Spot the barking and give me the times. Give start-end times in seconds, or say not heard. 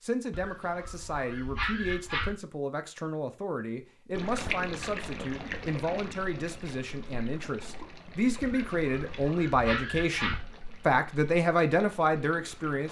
0.3-2.3, 8.4-10.4.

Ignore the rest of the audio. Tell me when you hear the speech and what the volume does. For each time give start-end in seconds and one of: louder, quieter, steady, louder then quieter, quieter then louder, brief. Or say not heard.
0.0-12.8 louder.